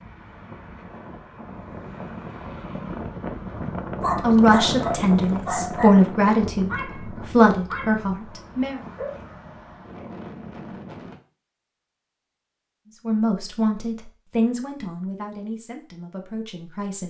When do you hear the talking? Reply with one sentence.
You can hear the talking from 4.2 to 8.8 s and from 13.1 to 17.0 s.